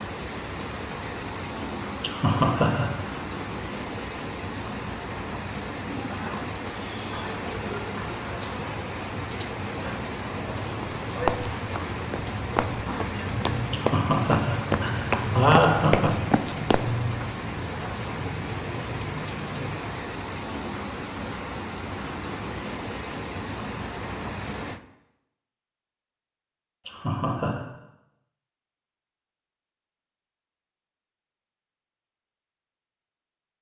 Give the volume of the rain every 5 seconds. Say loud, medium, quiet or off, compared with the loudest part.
loud, loud, loud, loud, loud, off, off.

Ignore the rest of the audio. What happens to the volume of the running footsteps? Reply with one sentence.
The volume of the running footsteps goes up.